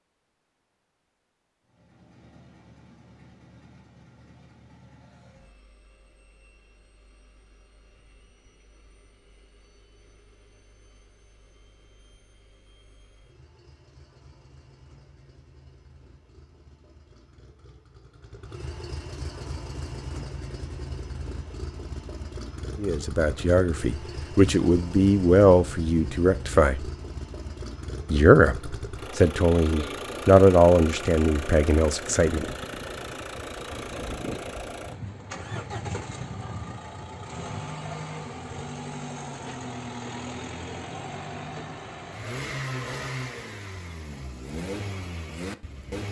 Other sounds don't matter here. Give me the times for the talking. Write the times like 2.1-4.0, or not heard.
22.8-26.9, 28.1-32.5.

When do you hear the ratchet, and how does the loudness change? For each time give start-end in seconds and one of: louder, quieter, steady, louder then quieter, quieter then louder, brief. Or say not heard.
not heard.